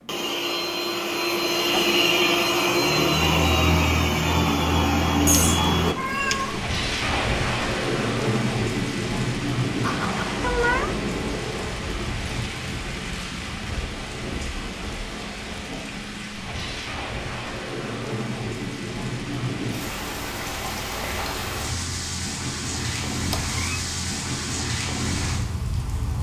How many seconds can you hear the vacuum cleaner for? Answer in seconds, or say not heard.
6 s.